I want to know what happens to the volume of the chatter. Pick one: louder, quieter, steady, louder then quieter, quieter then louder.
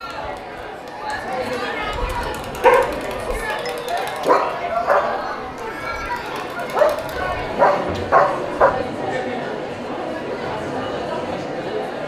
steady.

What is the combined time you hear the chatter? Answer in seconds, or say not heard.
12 s.